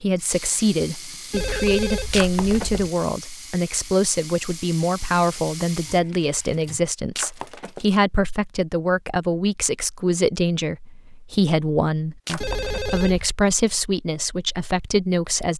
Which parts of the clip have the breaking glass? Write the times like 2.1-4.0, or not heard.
2.1-2.9, 7.2-7.9, 12.2-13.1.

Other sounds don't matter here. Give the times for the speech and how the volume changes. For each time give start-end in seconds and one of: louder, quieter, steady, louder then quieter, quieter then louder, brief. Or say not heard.
0.0-15.5 steady.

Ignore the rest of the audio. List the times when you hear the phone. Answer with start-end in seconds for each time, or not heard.
1.3-2.9, 12.4-13.3.